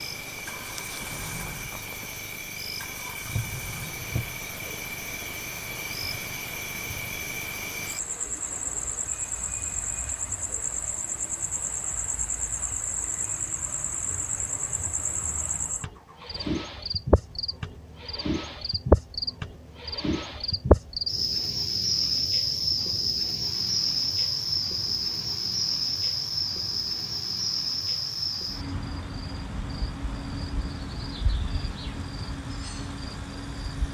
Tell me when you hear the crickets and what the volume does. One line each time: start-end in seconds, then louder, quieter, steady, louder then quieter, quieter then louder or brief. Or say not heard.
0.0-33.9 louder then quieter.